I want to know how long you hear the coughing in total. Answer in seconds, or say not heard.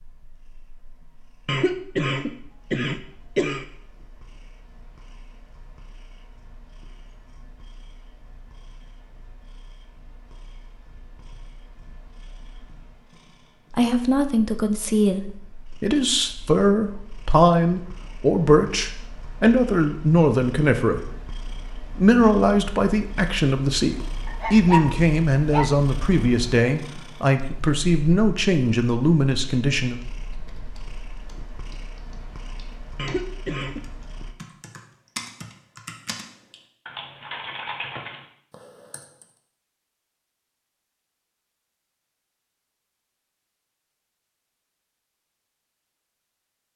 3 s.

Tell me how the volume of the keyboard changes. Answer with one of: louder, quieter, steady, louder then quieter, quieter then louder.
louder.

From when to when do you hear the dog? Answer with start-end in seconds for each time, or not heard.
24.2-25.8.